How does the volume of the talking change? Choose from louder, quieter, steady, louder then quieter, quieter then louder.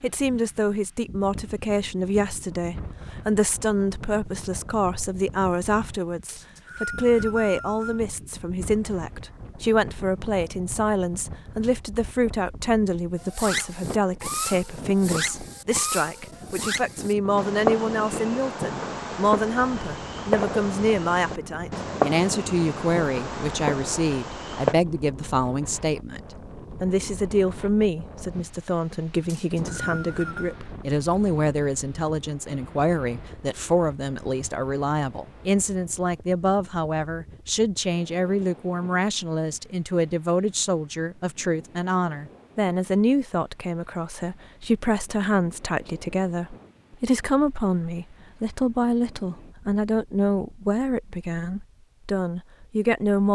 steady.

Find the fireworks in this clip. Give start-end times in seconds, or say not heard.
13.2-24.8.